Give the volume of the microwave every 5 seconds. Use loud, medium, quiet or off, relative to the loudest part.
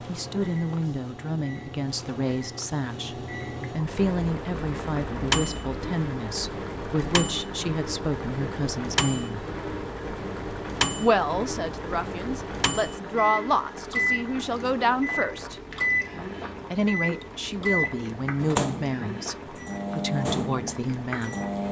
medium, loud, loud, loud, loud.